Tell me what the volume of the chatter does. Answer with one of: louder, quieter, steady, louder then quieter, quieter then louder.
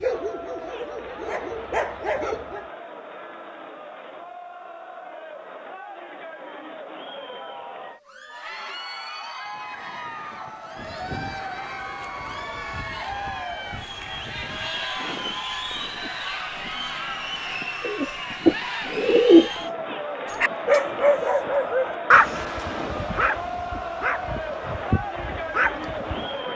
louder.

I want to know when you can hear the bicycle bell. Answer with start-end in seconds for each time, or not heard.
not heard.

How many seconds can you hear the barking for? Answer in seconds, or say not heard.
9 s.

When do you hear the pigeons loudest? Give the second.
19 s.